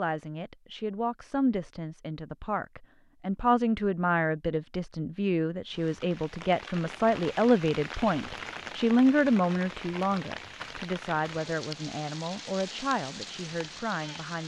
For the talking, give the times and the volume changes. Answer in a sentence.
The talking can be heard from 0.0 to 14.4 s, getting louder then quieter.